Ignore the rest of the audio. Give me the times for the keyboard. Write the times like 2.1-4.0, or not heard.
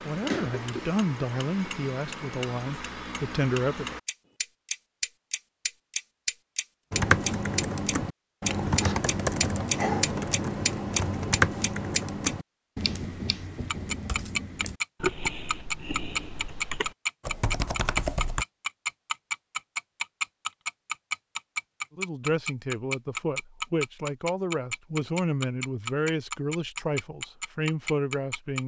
6.9-18.4.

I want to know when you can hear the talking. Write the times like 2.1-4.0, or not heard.
0.0-4.0, 21.9-28.6.